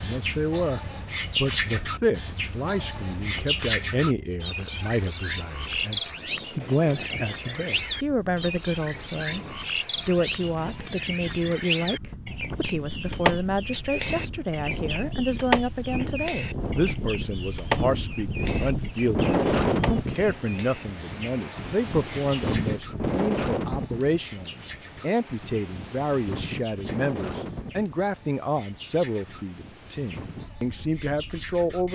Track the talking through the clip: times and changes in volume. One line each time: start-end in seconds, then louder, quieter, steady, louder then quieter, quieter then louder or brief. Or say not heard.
0.0-31.8 steady.